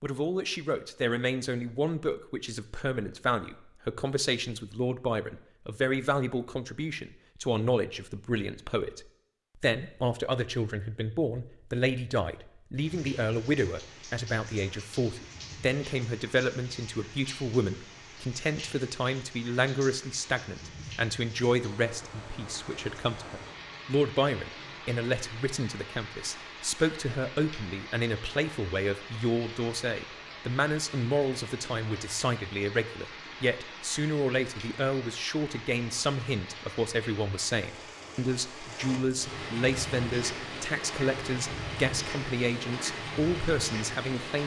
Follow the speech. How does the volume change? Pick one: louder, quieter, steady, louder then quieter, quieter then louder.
steady.